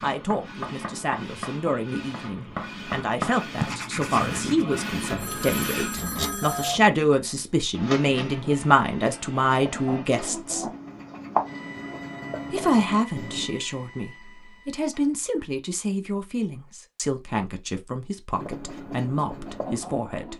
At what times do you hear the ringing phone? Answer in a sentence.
The ringing phone can be heard from 5.1 to 6.8 s.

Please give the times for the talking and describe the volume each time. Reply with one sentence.
You can hear the talking from 0.0 to 10.7 s, getting louder; and from 12.5 to 20.3 s, at a steady volume.